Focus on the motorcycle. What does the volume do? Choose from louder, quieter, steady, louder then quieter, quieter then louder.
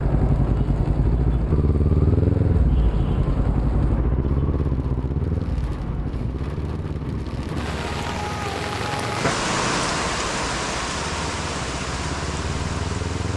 quieter.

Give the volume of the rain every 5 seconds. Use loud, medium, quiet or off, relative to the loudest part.
quiet, loud, loud.